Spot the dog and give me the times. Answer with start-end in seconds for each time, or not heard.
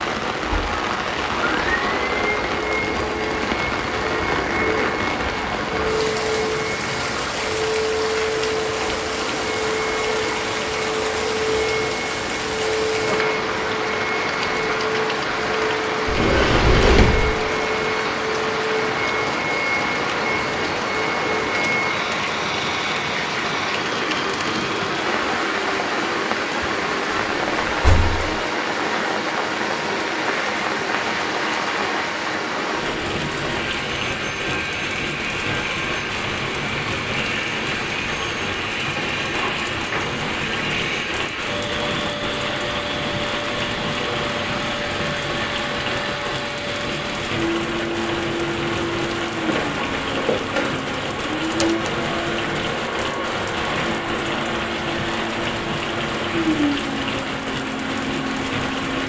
not heard.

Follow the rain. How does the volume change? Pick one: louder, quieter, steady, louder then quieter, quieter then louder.
steady.